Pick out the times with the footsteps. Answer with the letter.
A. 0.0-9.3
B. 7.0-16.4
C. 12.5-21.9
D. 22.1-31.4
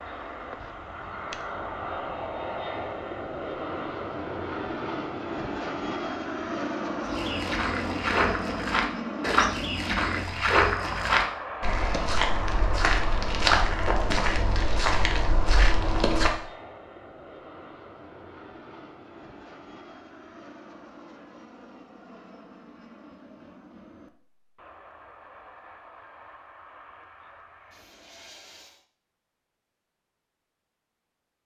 B.